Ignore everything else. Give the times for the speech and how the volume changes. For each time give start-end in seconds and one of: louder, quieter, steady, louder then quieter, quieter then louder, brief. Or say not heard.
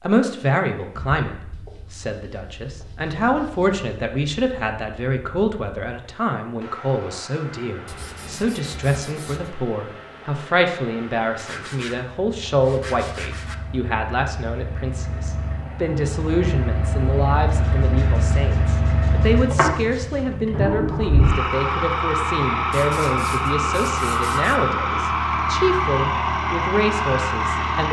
0.0-1.3 brief
1.9-27.8 steady.